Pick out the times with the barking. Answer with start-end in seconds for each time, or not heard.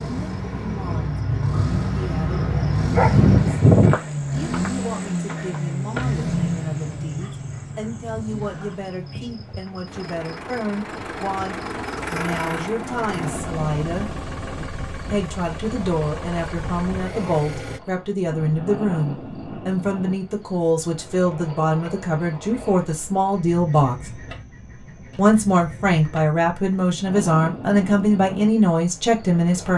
2.4-4.0.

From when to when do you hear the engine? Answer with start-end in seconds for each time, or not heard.
0.0-17.8.